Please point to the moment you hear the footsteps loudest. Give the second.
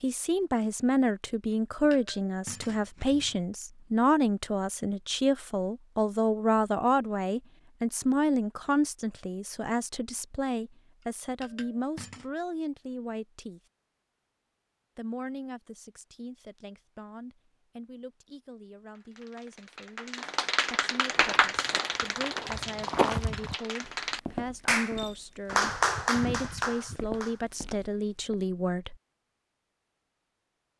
23 s.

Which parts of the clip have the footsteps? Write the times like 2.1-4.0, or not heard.
21.1-28.4.